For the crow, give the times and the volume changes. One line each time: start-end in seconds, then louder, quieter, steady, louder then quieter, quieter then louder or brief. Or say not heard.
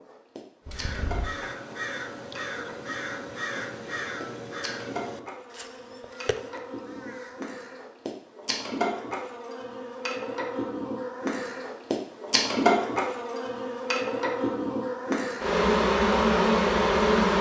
0.7-7.5 quieter.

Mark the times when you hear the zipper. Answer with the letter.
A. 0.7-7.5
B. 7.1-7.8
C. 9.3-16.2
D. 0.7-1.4
D.